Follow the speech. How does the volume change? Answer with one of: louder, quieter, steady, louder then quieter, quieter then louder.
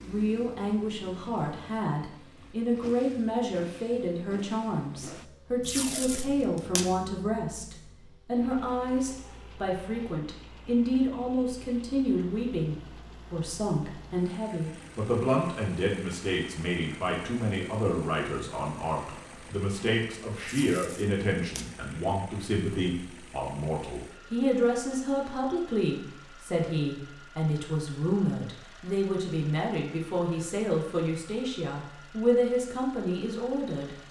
steady.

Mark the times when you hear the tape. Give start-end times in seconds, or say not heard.
5.6-6.8, 20.4-21.6.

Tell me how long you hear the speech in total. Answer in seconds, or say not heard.
34 s.